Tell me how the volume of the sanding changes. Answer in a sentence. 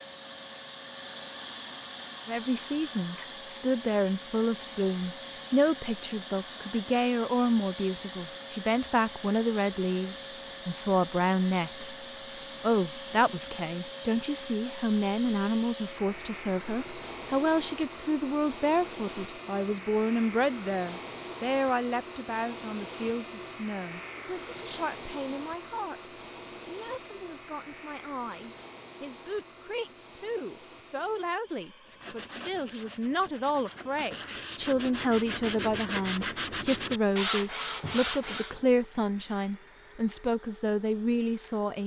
The loudness of the sanding goes up.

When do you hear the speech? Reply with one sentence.
The speech can be heard from 2.2 to 11.9 s and from 12.6 to 41.8 s.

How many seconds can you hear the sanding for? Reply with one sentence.
The sanding can be heard for 7 seconds in total.